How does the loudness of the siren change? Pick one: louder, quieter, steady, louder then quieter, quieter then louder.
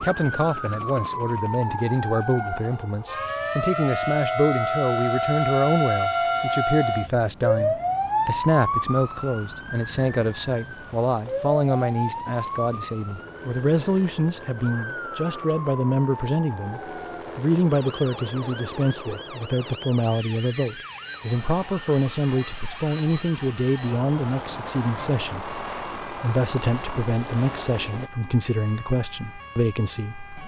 quieter.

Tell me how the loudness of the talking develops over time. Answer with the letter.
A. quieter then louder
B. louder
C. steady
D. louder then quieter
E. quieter
C.